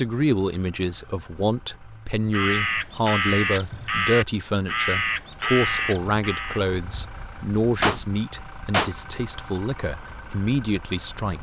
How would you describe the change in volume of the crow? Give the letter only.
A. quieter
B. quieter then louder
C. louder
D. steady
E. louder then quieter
A.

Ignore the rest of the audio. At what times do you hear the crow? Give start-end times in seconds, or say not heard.
2.3-7.4.